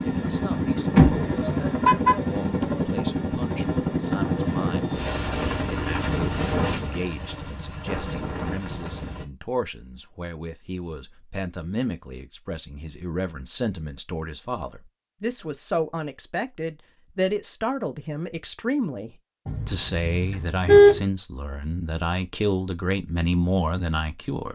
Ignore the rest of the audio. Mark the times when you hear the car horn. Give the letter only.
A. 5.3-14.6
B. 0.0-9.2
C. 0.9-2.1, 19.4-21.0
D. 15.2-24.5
C.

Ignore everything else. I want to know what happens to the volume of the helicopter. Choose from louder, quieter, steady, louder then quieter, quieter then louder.
quieter.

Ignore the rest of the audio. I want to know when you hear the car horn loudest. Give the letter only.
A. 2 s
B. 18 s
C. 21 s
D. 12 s
C.